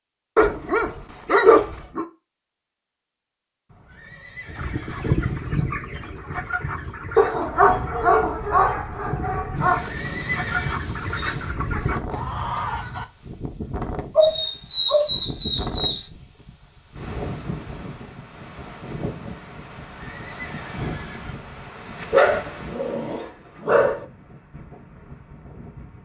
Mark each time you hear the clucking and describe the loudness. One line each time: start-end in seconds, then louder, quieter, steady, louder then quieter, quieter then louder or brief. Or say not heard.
4.5-13.1 quieter then louder.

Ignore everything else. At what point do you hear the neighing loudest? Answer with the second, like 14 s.
10 s.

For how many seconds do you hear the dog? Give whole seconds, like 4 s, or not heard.
8 s.